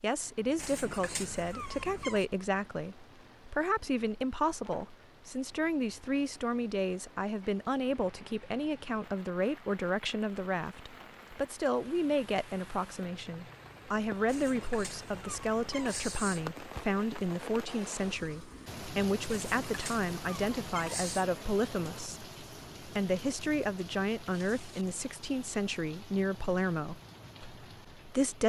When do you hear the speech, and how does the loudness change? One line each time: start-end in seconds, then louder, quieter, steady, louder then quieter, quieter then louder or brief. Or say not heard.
0.0-28.4 steady.